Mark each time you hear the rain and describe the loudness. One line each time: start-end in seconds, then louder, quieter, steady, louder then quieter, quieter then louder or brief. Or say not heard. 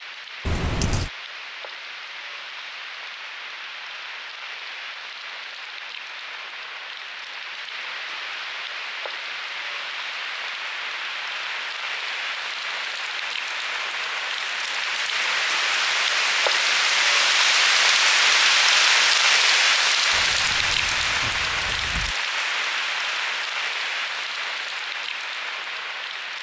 0.0-26.3 louder then quieter.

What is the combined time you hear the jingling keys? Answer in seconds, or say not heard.
3 s.